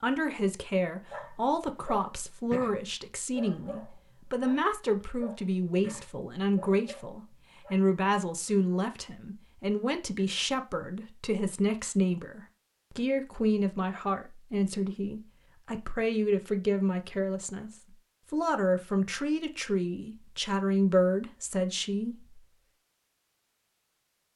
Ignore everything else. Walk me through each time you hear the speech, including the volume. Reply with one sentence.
The speech can be heard from 0.0 to 22.4 s, at a steady volume.